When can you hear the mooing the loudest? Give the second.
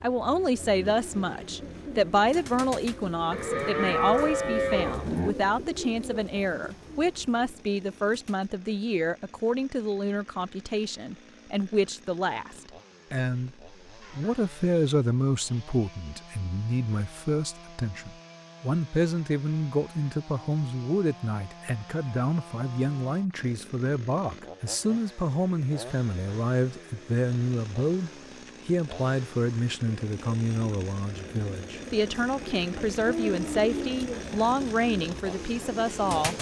4 s.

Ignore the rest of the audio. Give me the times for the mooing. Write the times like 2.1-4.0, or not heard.
3.3-5.3, 33.0-34.0.